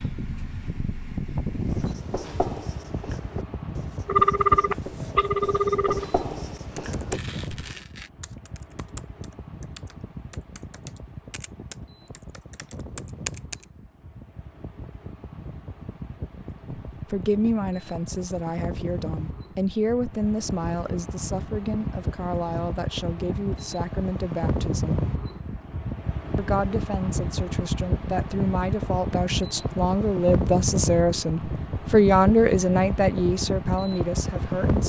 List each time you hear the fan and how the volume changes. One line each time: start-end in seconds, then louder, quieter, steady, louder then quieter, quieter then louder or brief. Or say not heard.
0.0-34.8 quieter then louder.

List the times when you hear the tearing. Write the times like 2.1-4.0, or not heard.
7.1-8.1.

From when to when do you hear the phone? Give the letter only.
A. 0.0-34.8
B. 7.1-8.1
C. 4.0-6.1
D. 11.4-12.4
C.